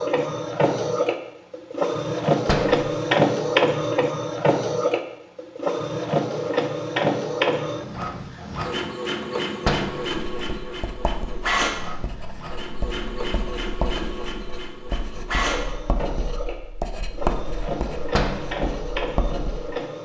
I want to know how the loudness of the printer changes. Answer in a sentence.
The volume of the printer goes down.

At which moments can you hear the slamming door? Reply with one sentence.
The slamming door can be heard from 2.5 to 2.9 s, from 9.7 to 10.1 s and from 18.1 to 18.6 s.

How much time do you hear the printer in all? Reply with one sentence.
The printer can be heard for 20 seconds in total.